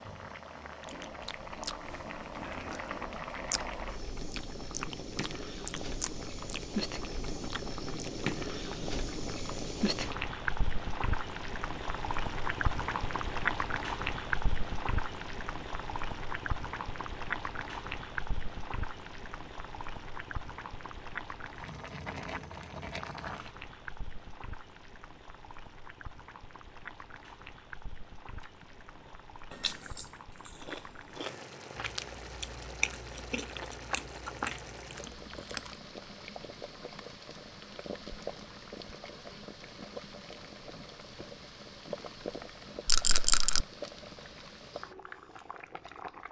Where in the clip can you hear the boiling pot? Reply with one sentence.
The boiling pot can be heard from 0.0 to 46.2 s.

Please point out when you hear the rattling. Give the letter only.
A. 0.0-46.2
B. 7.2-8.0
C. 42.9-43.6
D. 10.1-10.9
C.